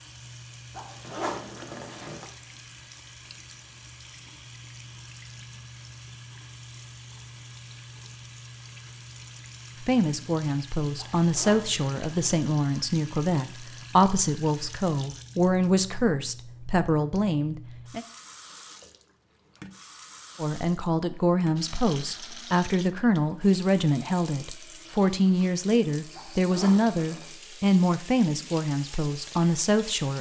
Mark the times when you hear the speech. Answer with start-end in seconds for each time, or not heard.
9.8-18.1, 20.4-30.1.